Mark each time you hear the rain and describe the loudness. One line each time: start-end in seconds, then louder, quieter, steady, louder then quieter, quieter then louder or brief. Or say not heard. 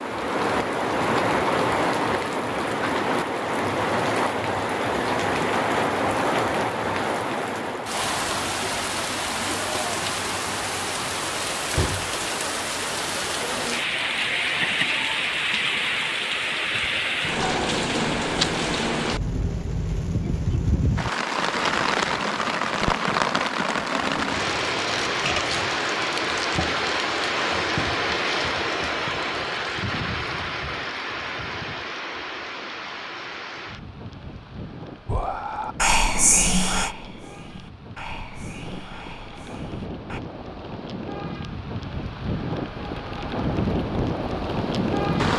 0.0-45.3 quieter.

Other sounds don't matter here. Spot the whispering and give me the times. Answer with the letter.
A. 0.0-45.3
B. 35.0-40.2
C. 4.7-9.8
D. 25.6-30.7
B.